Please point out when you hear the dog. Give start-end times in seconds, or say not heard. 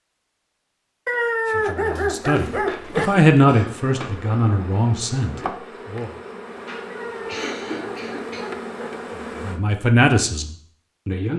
1.1-3.1, 6.8-8.9.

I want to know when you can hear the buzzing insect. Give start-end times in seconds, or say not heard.
1.8-9.6.